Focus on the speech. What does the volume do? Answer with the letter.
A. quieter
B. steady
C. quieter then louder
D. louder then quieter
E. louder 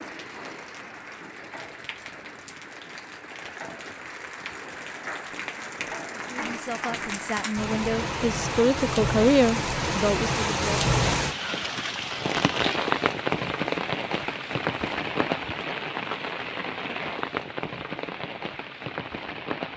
D.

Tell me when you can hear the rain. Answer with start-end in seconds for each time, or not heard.
0.0-19.7.